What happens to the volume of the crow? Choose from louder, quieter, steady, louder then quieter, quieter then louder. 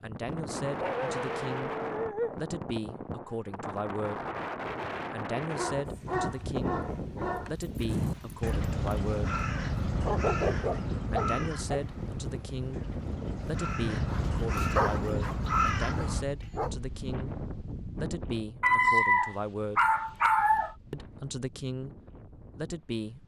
quieter then louder.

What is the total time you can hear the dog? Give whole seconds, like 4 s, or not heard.
10 s.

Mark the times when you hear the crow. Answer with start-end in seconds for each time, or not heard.
7.8-16.2.